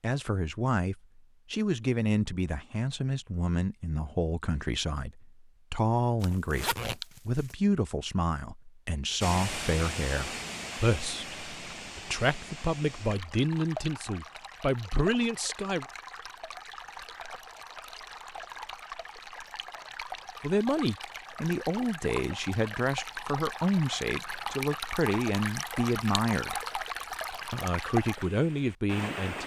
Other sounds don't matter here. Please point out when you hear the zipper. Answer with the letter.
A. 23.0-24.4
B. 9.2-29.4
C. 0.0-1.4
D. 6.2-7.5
D.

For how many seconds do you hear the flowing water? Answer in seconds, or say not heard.
20 s.